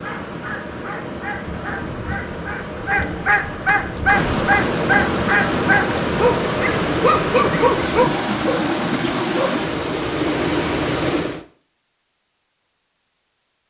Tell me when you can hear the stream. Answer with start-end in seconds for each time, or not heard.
0.0-11.4.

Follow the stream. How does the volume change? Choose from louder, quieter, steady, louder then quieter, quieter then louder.
louder.